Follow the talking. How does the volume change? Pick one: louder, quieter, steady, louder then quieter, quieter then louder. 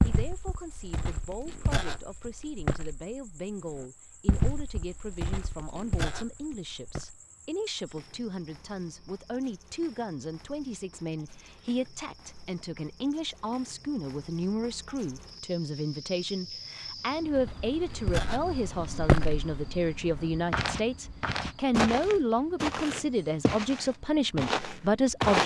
louder.